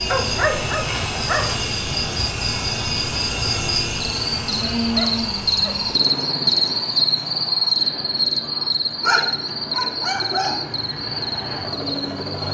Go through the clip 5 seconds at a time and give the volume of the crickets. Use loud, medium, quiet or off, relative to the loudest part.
medium, loud, medium.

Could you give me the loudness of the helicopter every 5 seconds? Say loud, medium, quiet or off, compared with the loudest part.
loud, medium, medium.